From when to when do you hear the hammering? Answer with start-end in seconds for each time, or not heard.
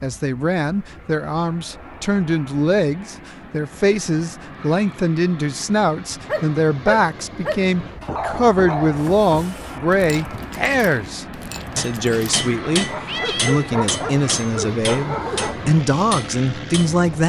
11.8-16.9.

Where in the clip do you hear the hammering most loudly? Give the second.
13 s.